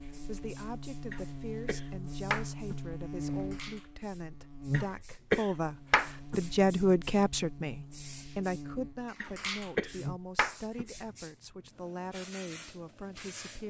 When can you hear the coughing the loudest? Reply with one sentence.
The volume of the coughing peaks at 5 seconds.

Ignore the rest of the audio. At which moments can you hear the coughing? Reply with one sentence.
You can hear the coughing from 1.1 to 3.0 s, from 4.7 to 6.5 s and from 9.2 to 11.1 s.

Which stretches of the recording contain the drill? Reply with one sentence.
You can't hear the drill here.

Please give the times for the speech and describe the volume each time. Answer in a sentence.
The speech can be heard from 0.2 to 13.6 s, getting louder then quieter.